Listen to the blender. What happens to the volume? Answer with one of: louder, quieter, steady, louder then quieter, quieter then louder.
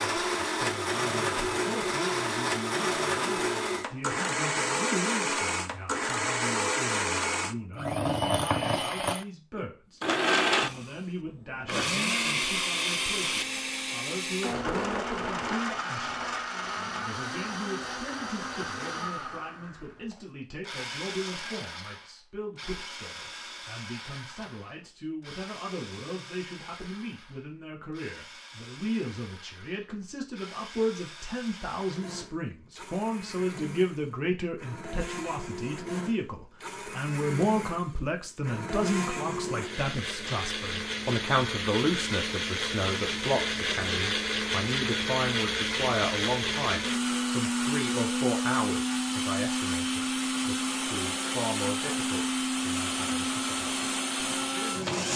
quieter then louder.